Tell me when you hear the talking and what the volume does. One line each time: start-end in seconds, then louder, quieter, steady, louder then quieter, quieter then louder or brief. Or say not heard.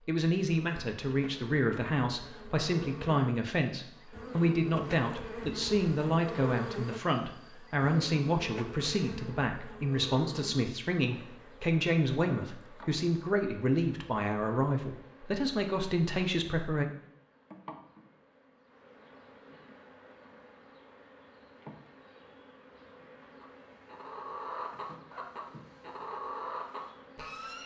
0.1-16.9 steady.